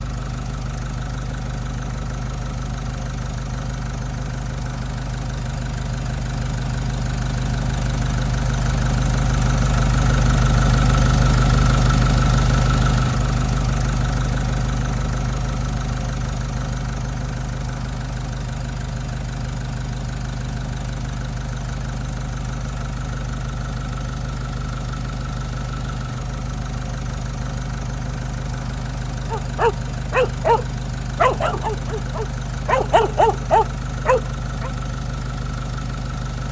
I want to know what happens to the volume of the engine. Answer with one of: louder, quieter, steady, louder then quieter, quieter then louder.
louder then quieter.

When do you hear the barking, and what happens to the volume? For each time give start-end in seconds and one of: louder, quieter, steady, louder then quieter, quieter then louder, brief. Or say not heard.
29.3-34.7 quieter then louder.